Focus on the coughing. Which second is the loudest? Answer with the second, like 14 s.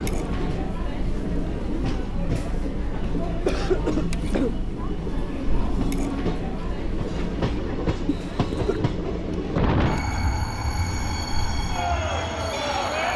4 s.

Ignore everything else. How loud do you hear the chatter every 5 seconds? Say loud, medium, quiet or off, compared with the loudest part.
loud, medium, loud.